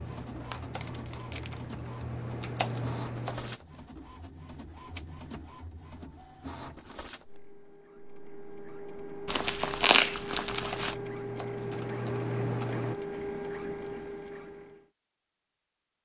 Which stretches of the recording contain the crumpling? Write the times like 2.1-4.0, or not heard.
0.4-1.6, 9.2-10.9.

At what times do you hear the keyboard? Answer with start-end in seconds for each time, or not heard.
0.0-3.5, 10.5-12.9.